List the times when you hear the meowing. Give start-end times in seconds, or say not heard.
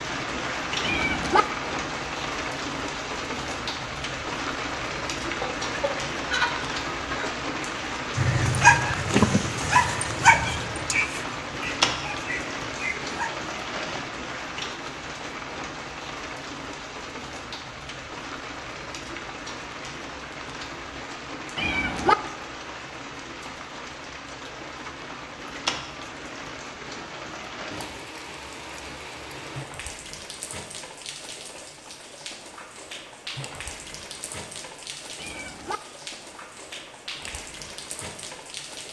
0.8-1.4, 21.6-22.1, 35.1-35.8.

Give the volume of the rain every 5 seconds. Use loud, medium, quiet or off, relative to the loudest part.
loud, loud, loud, medium, medium, medium, medium, medium.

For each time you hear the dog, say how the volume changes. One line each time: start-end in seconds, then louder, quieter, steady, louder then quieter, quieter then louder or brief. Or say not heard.
8.2-13.3 quieter then louder.